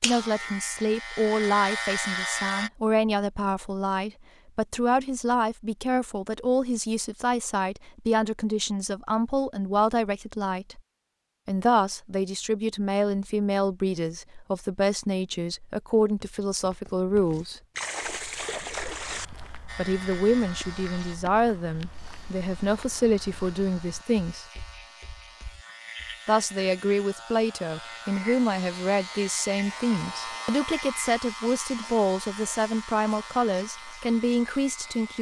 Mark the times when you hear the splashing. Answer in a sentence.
You can hear the splashing from 17.8 to 19.2 s.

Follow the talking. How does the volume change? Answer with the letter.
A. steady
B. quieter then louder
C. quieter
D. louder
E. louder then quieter
A.